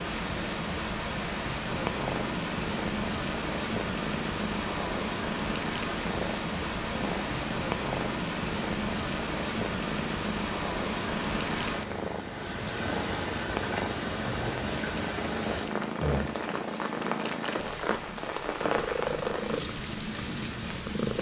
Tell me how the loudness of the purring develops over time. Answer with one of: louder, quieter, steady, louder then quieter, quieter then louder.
steady.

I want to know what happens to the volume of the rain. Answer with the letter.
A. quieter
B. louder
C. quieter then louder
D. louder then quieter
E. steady
E.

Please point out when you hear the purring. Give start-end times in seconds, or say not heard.
1.7-21.1.